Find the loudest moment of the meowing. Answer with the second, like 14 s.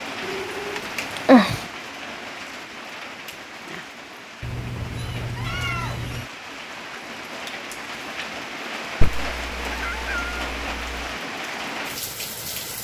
1 s.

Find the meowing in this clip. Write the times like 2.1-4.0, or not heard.
0.2-1.6, 4.4-6.3, 9.0-11.1.